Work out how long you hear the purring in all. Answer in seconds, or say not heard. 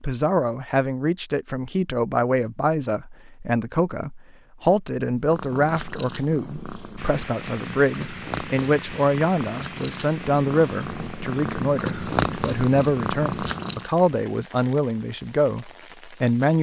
9 s.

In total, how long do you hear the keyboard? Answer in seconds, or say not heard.
not heard.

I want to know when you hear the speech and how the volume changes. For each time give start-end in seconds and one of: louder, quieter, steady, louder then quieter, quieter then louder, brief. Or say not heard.
0.0-16.5 steady.